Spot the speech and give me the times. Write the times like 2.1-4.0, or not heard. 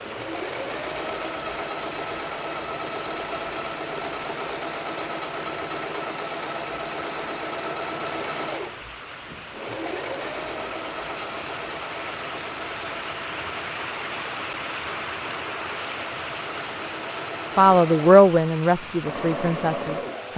17.6-20.3.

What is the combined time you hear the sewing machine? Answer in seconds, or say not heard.
20 s.